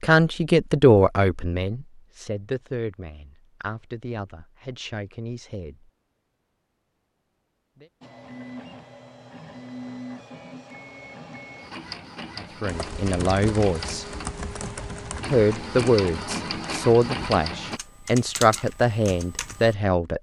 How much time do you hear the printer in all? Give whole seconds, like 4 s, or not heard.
10 s.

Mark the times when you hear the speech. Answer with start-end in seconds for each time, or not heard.
0.0-5.9, 12.3-14.1, 15.3-20.1.